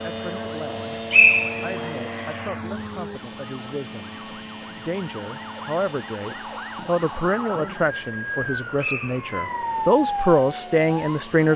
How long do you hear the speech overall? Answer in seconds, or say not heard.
10 s.